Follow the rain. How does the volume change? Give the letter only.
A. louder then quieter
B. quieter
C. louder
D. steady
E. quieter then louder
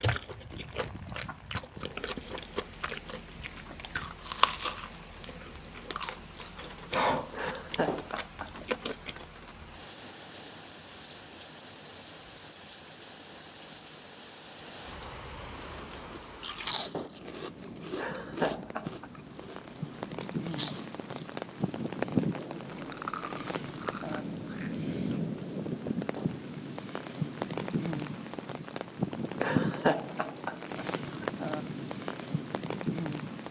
C.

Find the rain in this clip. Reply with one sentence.
The rain can be heard from 0.0 to 33.4 s.